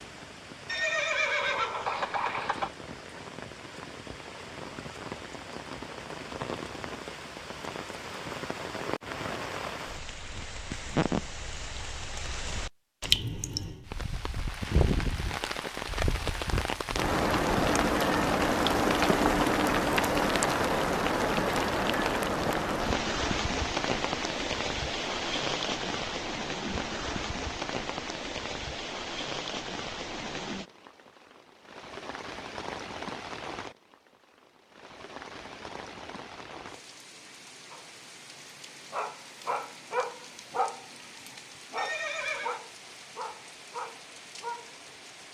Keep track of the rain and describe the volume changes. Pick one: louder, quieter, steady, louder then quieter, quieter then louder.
louder then quieter.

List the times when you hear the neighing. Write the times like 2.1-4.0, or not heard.
0.7-2.7, 41.8-42.6.